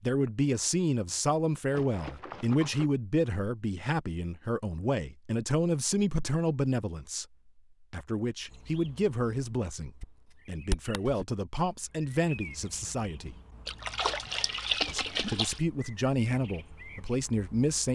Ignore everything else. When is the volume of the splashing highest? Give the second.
15 s.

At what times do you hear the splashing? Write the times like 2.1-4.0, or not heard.
1.7-2.9, 13.7-15.6.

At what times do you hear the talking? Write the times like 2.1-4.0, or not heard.
0.0-7.2, 7.9-13.3, 14.8-17.9.